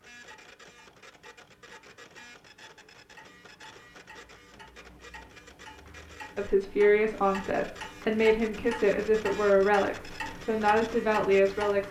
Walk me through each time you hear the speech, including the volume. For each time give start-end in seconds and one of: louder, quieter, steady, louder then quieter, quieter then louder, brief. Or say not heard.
6.3-11.8 steady.